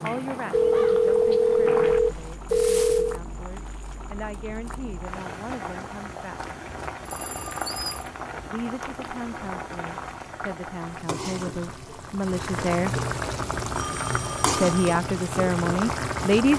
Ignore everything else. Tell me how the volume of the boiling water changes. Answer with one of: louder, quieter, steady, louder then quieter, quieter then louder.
louder.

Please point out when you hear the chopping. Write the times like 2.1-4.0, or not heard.
not heard.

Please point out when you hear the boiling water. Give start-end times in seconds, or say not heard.
0.0-16.5.